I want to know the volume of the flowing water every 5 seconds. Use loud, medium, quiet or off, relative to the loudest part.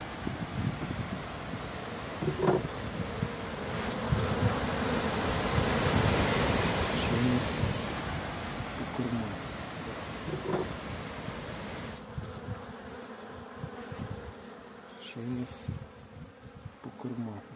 medium, loud, medium, off.